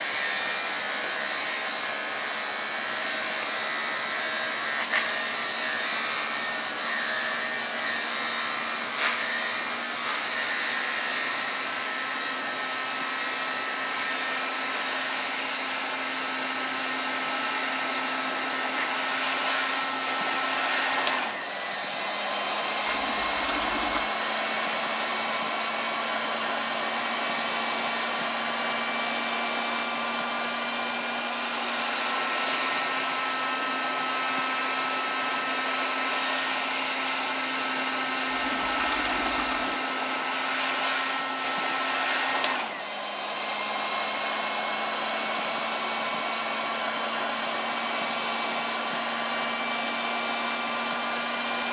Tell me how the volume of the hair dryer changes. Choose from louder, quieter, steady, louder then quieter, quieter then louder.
louder.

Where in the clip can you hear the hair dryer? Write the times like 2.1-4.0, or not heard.
0.0-51.6.